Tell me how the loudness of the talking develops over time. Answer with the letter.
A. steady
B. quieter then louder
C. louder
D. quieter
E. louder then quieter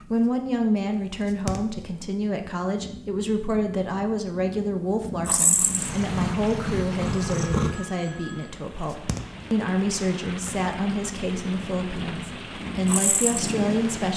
A.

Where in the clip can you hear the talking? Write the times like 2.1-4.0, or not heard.
0.0-14.1.